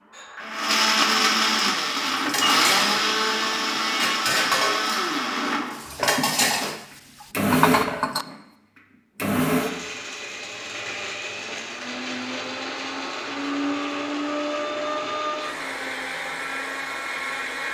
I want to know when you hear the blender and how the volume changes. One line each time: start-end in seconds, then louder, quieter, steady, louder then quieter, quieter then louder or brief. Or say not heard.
0.0-17.6 quieter.